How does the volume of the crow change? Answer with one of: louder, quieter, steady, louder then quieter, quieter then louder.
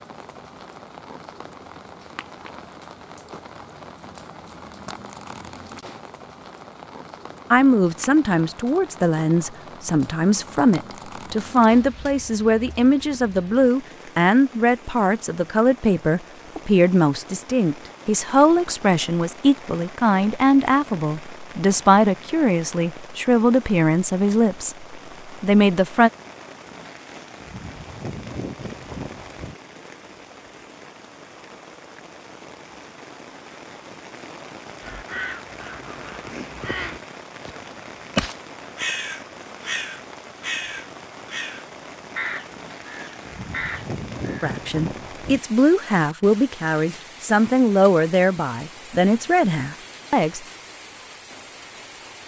louder then quieter.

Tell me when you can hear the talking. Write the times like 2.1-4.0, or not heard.
7.5-26.1, 44.4-50.4.